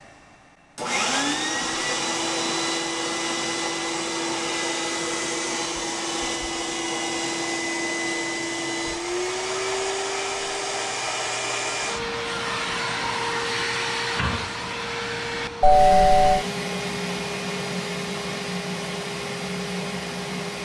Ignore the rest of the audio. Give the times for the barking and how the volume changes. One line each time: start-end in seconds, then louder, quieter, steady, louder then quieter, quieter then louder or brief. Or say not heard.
not heard.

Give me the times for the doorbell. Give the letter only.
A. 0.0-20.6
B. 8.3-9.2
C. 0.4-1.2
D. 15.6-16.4
D.